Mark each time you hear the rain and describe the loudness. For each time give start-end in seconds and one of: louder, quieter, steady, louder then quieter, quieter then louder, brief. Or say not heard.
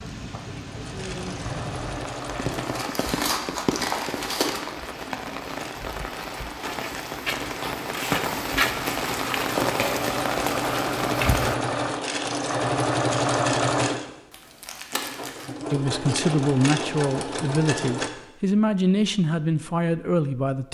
0.0-11.6 louder.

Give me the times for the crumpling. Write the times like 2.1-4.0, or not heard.
2.6-4.9, 8.0-10.0, 14.3-15.5.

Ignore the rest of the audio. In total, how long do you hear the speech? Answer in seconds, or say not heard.
5 s.